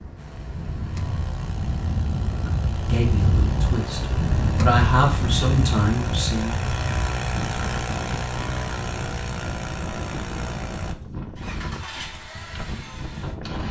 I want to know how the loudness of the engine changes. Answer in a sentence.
The loudness of the engine goes up, then down.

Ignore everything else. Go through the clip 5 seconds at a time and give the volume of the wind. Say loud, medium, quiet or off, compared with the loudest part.
loud, loud, medium.